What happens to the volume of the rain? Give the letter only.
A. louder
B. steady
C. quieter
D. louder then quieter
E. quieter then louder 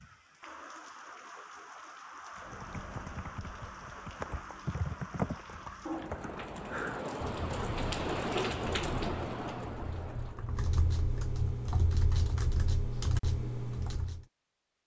A.